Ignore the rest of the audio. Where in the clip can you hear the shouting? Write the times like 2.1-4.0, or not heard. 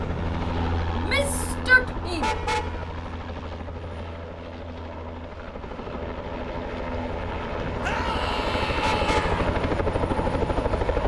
0.9-2.4, 7.8-9.4.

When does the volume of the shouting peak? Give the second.
2 s.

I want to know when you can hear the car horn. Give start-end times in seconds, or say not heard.
2.2-2.9, 8.8-9.3.